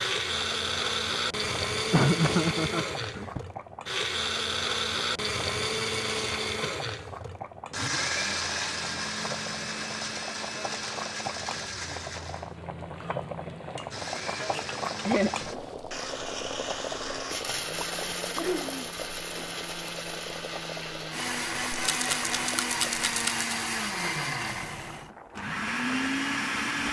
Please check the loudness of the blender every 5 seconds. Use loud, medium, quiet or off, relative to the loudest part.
loud, loud, medium, medium, loud, loud.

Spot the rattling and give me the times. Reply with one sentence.
You can hear the rattling from 21.8 to 23.6 s.